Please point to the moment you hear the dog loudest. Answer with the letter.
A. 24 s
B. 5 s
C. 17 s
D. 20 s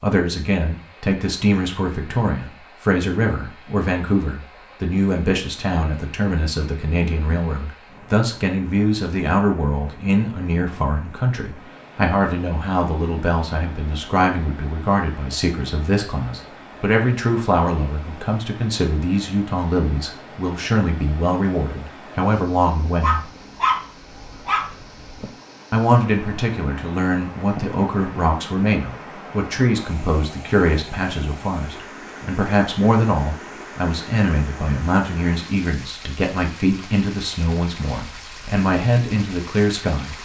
A.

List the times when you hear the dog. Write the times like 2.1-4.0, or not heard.
23.0-25.3.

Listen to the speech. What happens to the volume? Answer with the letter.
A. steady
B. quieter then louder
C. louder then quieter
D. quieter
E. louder
A.